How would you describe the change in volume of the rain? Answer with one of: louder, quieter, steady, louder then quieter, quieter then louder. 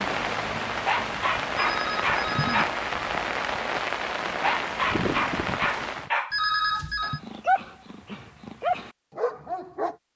steady.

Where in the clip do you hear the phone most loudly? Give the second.
7 s.